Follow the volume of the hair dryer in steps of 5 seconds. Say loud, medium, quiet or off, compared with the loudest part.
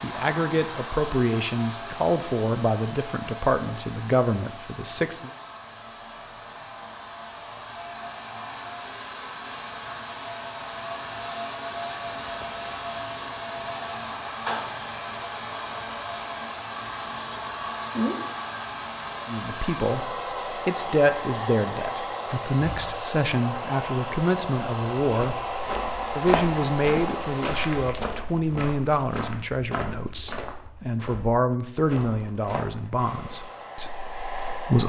medium, medium, loud, loud, loud, loud, medium.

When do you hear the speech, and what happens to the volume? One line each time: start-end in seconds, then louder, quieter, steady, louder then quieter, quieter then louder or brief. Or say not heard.
0.0-5.3 steady
19.2-34.8 steady.